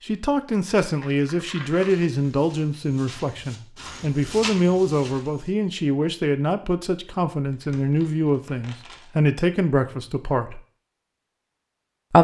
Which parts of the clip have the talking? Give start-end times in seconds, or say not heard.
0.0-10.6.